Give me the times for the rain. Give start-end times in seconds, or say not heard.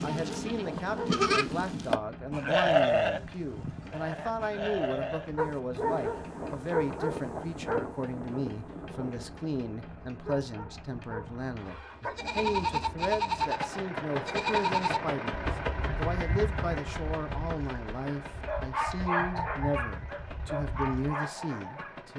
not heard.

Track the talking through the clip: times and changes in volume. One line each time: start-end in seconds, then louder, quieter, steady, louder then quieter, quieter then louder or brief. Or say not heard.
0.0-22.1 steady.